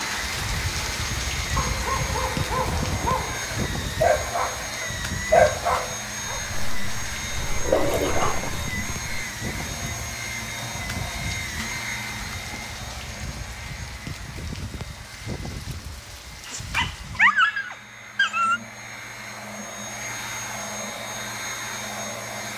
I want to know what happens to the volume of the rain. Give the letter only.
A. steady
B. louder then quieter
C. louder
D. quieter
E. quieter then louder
D.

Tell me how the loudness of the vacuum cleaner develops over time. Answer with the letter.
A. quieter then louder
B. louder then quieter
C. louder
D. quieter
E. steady
A.